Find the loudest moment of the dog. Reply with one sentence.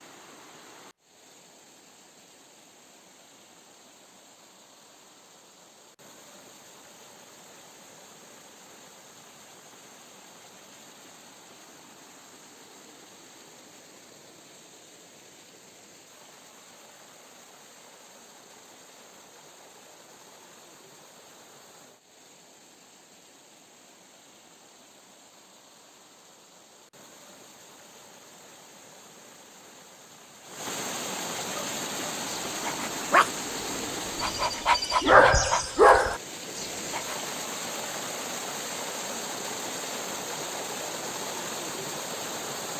The volume of the dog peaks at 35 seconds.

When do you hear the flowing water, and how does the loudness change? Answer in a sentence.
The flowing water can be heard from 0.0 to 42.7 s, getting louder.